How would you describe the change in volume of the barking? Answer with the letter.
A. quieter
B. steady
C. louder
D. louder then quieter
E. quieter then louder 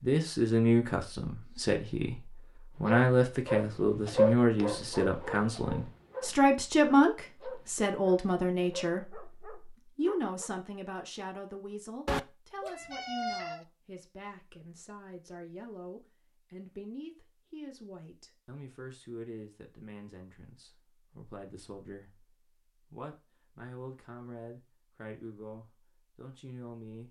A.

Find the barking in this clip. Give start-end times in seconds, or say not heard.
2.8-10.5.